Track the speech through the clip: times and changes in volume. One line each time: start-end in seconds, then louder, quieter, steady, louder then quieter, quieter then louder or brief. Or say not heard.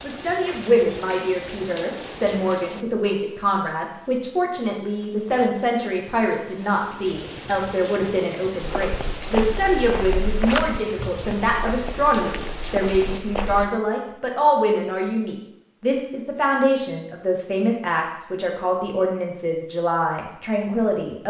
0.0-21.2 steady.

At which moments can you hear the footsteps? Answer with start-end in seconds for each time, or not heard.
8.6-13.7.